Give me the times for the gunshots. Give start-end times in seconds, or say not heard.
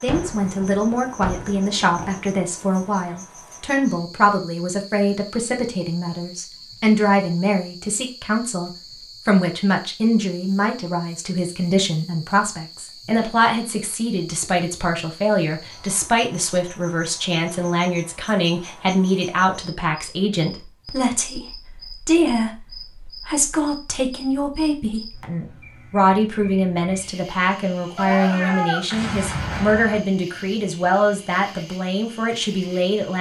0.1-3.0, 27.9-30.0.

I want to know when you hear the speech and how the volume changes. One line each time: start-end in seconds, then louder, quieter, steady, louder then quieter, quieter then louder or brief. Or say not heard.
0.0-33.1 steady.